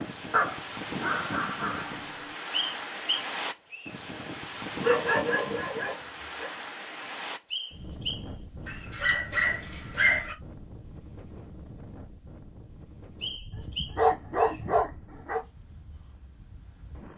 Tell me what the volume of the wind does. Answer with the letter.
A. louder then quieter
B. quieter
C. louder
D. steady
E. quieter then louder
B.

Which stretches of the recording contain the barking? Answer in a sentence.
The barking can be heard from 0.3 to 2.1 s, from 4.8 to 6.5 s, from 8.7 to 10.3 s and from 13.5 to 15.4 s.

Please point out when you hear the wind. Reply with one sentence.
The wind can be heard from 0.0 to 17.1 s.